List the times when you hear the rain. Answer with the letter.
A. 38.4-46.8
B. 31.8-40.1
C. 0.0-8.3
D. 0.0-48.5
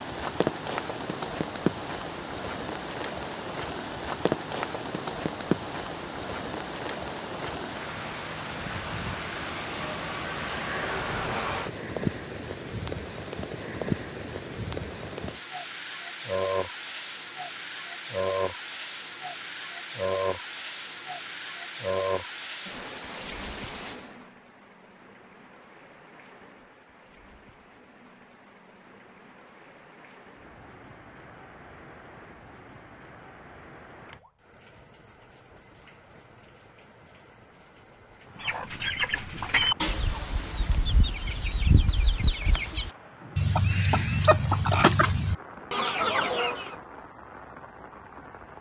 D.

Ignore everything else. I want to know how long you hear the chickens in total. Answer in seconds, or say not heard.
8 s.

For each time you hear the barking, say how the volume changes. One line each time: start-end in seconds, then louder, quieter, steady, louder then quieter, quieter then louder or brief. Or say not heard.
not heard.